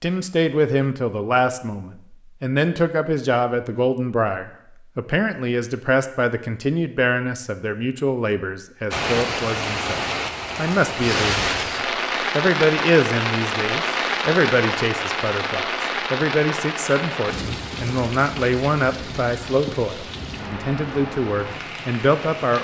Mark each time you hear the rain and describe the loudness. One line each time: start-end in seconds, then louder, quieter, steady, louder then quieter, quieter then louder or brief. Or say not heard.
8.9-22.5 quieter.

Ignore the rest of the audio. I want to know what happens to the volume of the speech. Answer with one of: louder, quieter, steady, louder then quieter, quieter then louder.
steady.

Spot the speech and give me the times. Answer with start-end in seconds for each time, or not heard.
0.0-11.6, 12.3-22.5.